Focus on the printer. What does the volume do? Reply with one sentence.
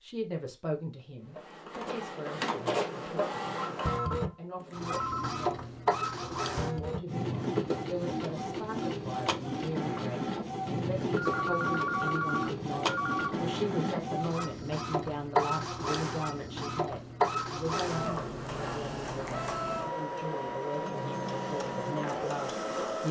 The loudness of the printer stays about the same.